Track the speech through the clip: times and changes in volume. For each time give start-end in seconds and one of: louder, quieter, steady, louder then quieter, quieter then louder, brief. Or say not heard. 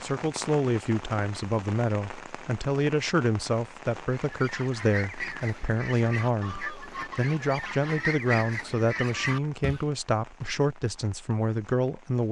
0.0-12.2 steady.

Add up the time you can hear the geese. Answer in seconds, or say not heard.
6 s.